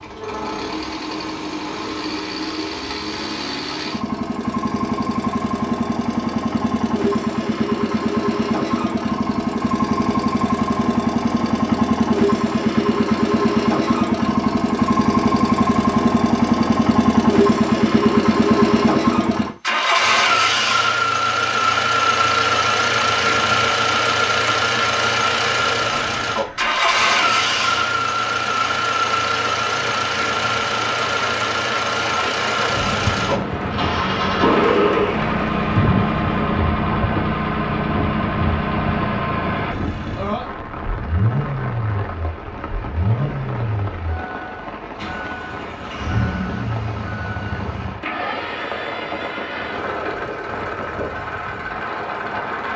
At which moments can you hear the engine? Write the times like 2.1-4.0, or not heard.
0.0-52.7.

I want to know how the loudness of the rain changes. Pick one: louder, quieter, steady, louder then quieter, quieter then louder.
louder then quieter.